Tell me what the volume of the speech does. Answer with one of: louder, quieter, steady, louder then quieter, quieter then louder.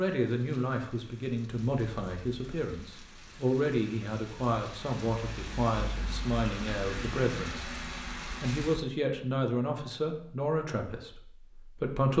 steady.